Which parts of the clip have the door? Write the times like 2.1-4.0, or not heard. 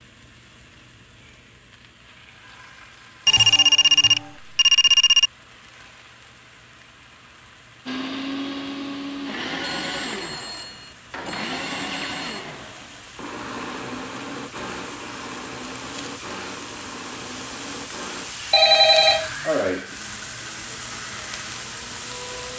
not heard.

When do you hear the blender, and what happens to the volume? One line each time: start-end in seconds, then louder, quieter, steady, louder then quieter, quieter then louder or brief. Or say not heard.
7.8-22.5 quieter.